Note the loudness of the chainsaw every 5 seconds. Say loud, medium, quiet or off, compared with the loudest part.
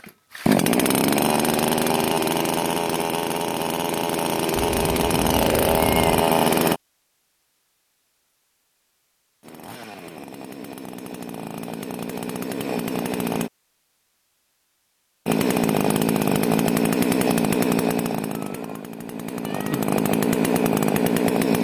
loud, loud, medium, loud, loud.